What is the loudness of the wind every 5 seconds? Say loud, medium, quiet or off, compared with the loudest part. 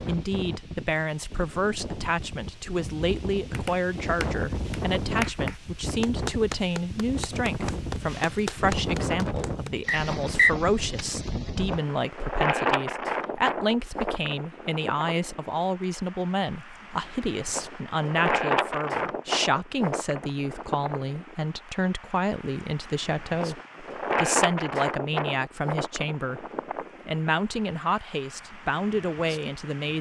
medium, loud, loud, loud, loud, medium.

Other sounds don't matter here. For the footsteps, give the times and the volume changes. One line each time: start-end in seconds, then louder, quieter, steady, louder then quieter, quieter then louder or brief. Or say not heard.
not heard.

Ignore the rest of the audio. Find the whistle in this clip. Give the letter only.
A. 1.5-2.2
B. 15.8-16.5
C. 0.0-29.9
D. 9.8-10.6
D.